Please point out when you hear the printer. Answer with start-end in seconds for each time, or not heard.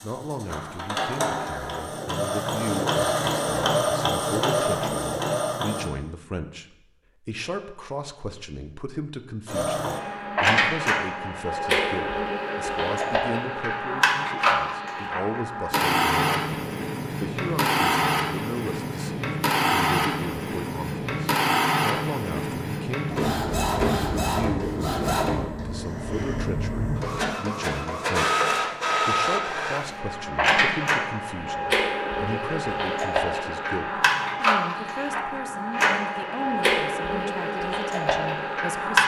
0.0-5.9, 9.4-39.0.